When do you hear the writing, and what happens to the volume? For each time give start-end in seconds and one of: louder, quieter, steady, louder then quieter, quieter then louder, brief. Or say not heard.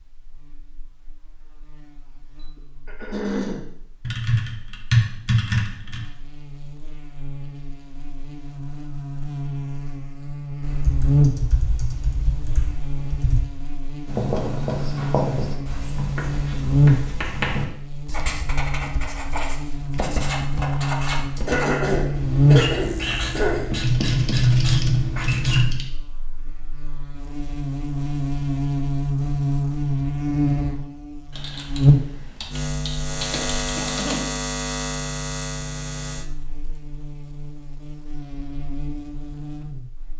14.1-25.6 steady.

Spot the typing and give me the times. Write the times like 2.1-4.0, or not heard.
4.0-6.0, 10.6-13.4, 23.8-25.9, 31.3-34.1.